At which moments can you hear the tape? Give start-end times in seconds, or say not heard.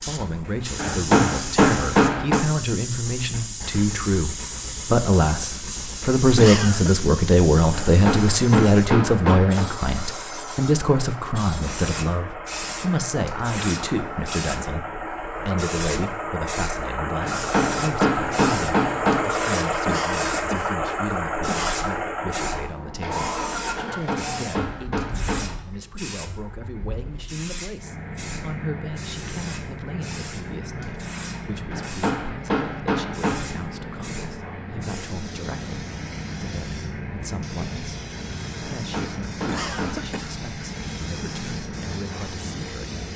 not heard.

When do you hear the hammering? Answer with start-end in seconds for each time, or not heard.
0.8-2.5, 7.7-9.7, 17.2-19.2, 23.8-25.5, 31.7-33.5, 38.8-40.1.